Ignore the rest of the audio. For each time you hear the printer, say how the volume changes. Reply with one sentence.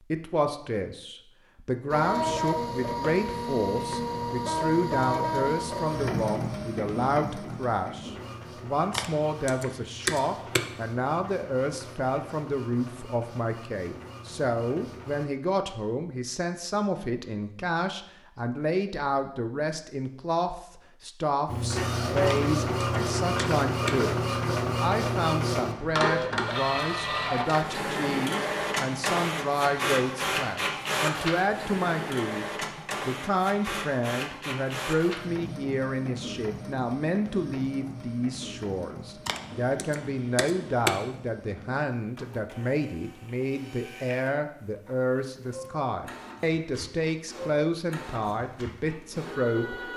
The printer can be heard from 1.9 to 15.2 s, getting quieter; and from 21.4 to 49.9 s, getting quieter.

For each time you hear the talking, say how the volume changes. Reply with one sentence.
You can hear the talking from 0.1 to 49.9 s, at a steady volume.